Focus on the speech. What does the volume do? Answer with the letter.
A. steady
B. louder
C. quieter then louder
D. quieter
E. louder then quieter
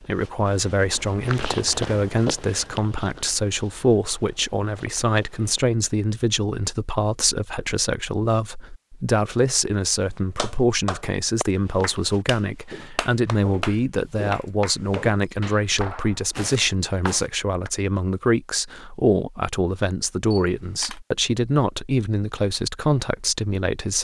A.